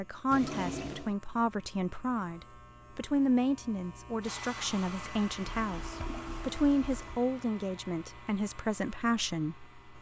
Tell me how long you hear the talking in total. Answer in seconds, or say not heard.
10 s.